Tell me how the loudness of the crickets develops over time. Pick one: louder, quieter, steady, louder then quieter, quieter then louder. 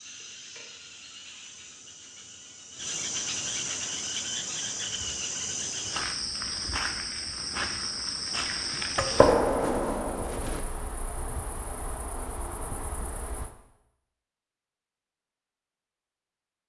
louder then quieter.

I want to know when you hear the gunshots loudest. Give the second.
9 s.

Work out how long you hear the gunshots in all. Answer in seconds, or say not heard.
2 s.